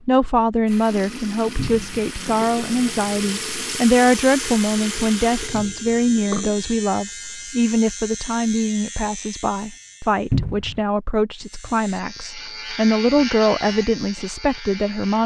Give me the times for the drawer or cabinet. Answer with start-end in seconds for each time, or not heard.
1.6-2.0, 5.5-5.9, 10.3-10.8.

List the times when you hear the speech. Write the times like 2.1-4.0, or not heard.
0.0-15.2.